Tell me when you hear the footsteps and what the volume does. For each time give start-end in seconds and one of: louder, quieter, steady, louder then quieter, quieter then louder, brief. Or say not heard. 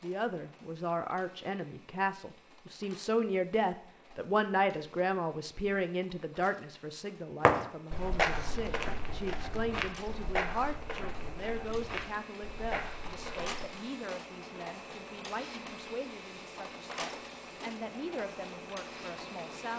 7.5-13.7 quieter.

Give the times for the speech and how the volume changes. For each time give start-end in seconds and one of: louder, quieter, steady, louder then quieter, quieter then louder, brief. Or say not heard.
0.0-19.7 quieter.